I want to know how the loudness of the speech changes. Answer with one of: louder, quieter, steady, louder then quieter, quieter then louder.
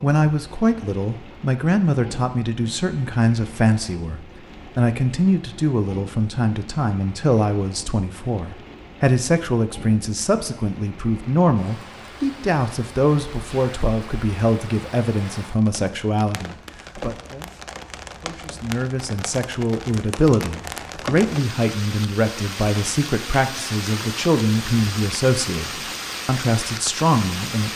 steady.